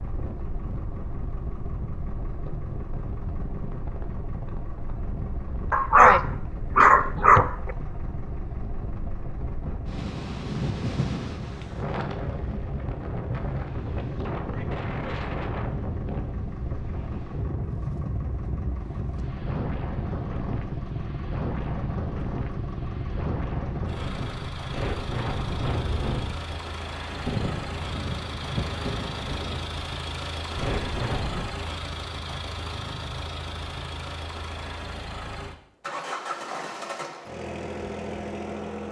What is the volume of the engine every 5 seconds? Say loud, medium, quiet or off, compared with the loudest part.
medium, medium, medium, medium, loud, loud, loud, loud.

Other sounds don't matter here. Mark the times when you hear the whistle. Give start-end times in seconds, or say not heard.
not heard.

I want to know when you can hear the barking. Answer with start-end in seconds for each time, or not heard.
5.7-7.8.